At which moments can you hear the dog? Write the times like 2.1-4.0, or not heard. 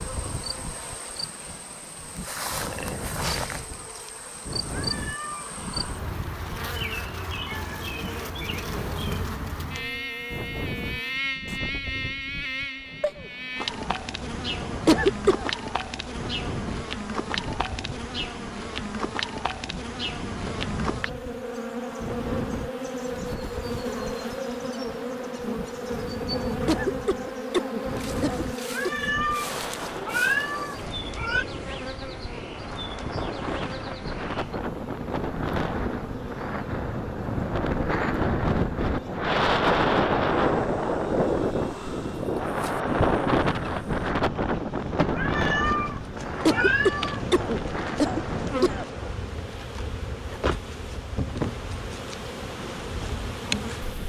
not heard.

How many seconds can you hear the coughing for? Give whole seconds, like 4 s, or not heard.
5 s.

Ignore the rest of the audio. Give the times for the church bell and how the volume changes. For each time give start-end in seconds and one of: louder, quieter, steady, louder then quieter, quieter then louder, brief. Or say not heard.
not heard.